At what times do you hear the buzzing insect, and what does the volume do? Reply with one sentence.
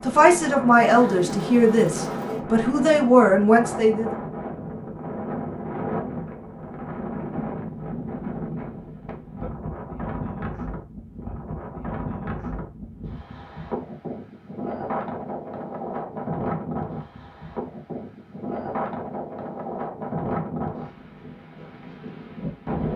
You can't hear the buzzing insect here.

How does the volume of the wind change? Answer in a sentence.
The volume of the wind stays about the same.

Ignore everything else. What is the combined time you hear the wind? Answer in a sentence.
You can hear the wind for 23 seconds altogether.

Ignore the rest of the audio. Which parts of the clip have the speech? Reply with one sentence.
You can hear the speech from 0.1 to 4.1 s.